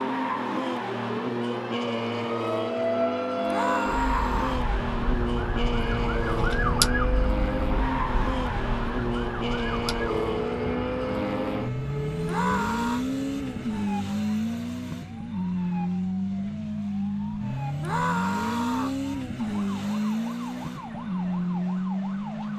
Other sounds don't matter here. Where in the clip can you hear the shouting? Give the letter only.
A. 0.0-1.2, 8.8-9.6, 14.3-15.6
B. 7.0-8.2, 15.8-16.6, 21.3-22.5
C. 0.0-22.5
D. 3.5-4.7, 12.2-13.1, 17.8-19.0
D.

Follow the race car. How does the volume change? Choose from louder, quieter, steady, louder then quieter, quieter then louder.
steady.